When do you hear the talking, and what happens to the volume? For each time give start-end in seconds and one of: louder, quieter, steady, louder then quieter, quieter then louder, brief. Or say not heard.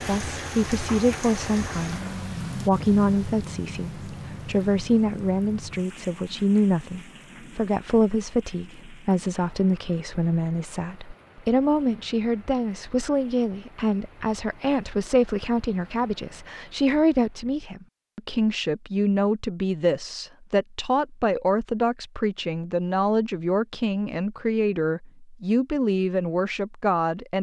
0.1-27.3 steady.